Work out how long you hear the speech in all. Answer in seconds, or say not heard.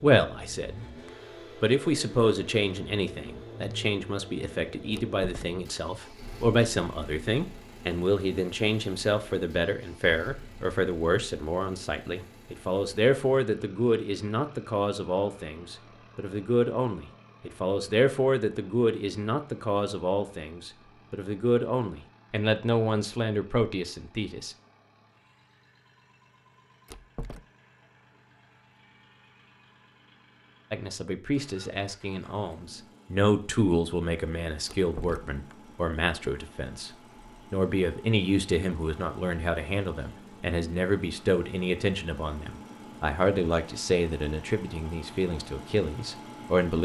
39 s.